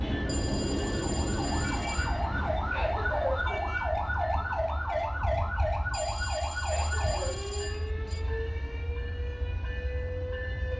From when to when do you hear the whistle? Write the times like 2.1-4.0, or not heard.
not heard.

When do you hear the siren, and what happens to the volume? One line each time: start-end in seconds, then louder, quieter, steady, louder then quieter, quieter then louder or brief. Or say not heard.
0.0-10.7 quieter.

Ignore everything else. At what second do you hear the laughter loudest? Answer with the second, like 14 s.
3 s.